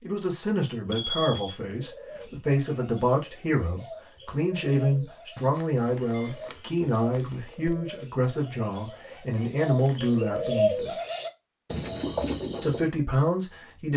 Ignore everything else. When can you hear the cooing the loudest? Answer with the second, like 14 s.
11 s.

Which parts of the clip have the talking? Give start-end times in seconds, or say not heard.
0.0-11.0, 12.6-13.9.